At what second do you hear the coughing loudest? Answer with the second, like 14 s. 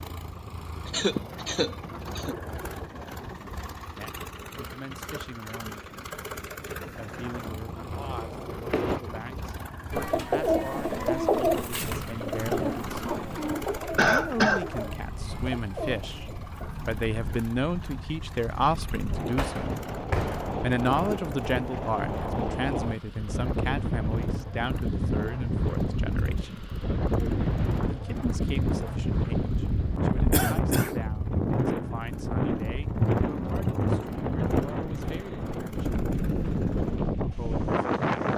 14 s.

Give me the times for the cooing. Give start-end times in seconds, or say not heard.
9.9-16.9.